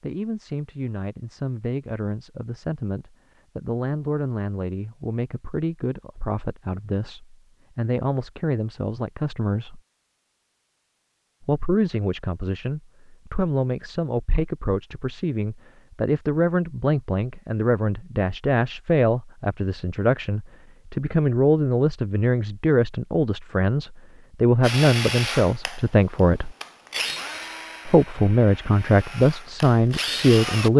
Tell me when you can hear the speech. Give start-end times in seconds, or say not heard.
0.0-9.8, 11.4-26.6, 27.9-30.7.